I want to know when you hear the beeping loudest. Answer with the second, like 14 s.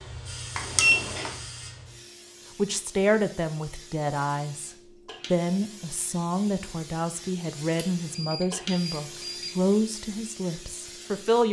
1 s.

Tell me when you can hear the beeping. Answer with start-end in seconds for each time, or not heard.
0.6-1.4, 7.8-9.7.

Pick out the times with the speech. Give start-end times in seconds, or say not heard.
2.5-4.7, 5.3-11.4.